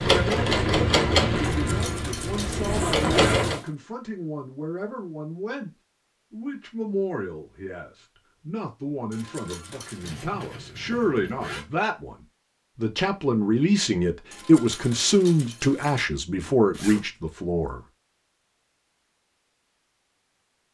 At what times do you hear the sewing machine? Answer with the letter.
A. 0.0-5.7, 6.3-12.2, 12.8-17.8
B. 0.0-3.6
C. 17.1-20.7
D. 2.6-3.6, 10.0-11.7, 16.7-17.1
B.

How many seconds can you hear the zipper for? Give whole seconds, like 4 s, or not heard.
3 s.